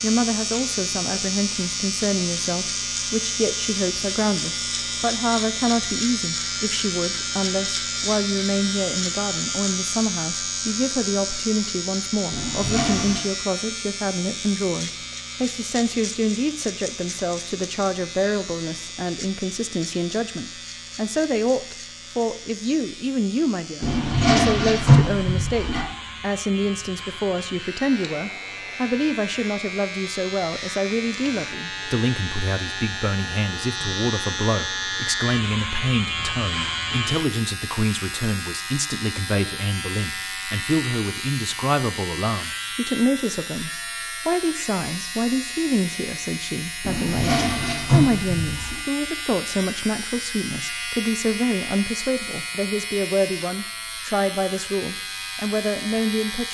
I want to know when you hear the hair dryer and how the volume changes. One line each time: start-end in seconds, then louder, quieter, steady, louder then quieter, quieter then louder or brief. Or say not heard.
not heard.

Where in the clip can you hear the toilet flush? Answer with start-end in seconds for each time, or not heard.
12.3-13.2, 23.8-25.9, 46.8-48.8.